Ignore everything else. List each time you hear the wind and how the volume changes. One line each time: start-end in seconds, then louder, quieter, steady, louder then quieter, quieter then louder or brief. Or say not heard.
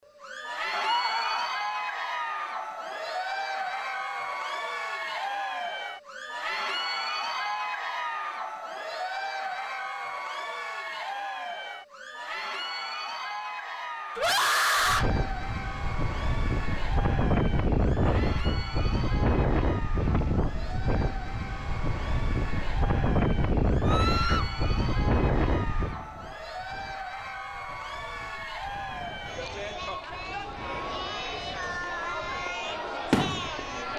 14.8-33.9 quieter.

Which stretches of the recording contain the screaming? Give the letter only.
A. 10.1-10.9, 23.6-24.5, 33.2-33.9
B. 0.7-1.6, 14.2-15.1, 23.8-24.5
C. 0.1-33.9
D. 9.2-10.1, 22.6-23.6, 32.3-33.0
B.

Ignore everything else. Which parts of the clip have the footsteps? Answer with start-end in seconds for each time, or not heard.
not heard.